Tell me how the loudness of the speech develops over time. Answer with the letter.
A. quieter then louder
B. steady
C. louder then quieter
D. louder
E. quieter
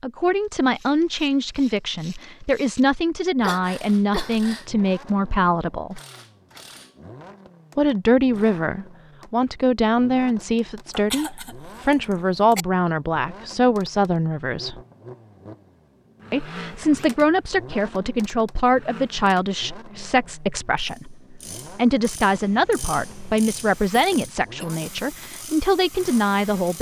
B.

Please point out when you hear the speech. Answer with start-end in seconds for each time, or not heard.
0.0-6.0, 7.8-14.8, 16.3-26.7.